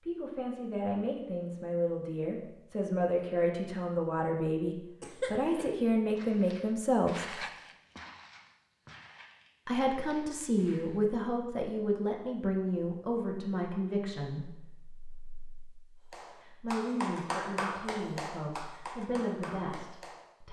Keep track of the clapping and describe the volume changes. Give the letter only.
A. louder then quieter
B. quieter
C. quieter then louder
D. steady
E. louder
B.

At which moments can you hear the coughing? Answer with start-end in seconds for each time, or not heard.
5.0-5.8.